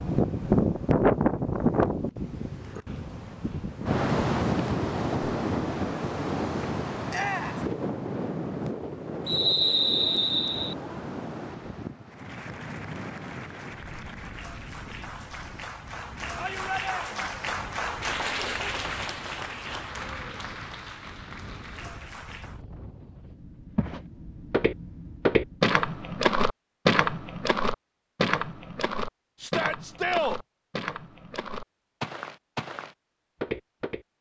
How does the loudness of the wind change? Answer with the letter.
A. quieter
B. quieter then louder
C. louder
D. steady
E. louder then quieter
A.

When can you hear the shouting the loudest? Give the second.
30 s.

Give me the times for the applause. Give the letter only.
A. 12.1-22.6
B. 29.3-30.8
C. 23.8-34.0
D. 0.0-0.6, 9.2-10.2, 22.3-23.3
A.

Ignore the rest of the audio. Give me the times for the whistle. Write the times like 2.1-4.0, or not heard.
9.2-10.8.